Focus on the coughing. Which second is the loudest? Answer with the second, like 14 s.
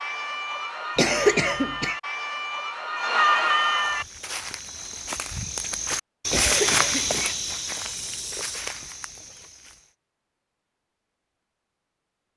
1 s.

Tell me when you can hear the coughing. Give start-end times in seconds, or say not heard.
0.9-1.9, 6.3-7.3.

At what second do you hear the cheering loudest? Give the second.
3 s.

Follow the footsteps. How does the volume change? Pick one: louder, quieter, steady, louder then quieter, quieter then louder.
louder then quieter.